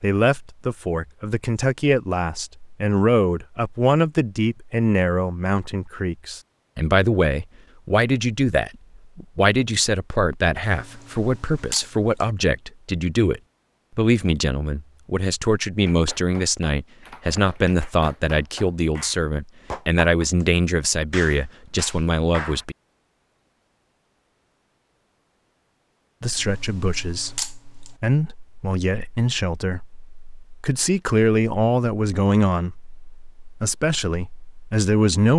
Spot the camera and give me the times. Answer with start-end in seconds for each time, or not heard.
10.7-12.2, 26.4-27.9.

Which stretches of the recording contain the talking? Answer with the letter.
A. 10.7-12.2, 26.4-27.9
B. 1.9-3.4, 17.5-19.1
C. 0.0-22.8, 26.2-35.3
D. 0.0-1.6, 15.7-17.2
C.